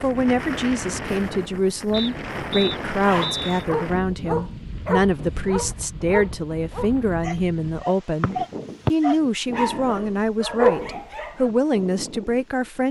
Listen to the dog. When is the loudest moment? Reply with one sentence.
The loudest moment of the dog is at 11 seconds.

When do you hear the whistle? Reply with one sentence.
You can hear the whistle from 1.9 to 3.6 s and from 8.2 to 8.9 s.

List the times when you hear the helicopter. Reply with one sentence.
The helicopter can't be heard in this clip.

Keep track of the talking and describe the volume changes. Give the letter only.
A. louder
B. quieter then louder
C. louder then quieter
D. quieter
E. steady
E.